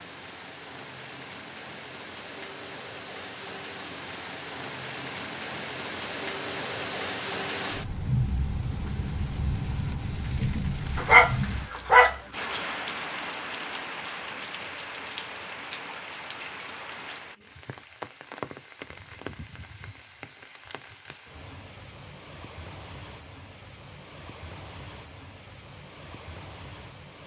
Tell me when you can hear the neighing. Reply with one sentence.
You can't hear the neighing here.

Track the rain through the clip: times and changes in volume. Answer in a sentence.
You can hear the rain from 0.0 to 27.2 s, getting louder then quieter.